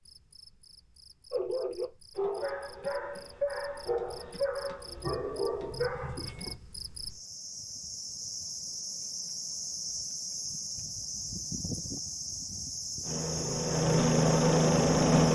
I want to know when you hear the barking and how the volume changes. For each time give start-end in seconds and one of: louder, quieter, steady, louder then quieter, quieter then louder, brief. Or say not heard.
1.3-6.5 steady.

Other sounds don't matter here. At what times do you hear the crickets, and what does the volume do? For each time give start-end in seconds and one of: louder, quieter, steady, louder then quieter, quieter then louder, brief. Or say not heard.
0.0-15.3 louder.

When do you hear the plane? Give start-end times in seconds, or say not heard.
13.0-15.3.